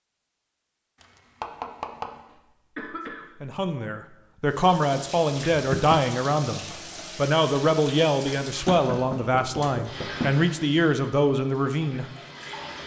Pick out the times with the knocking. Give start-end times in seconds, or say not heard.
1.0-2.2, 5.5-6.1, 8.7-10.4.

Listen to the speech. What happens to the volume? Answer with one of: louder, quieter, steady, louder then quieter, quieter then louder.
steady.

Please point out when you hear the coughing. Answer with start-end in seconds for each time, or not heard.
2.3-3.5.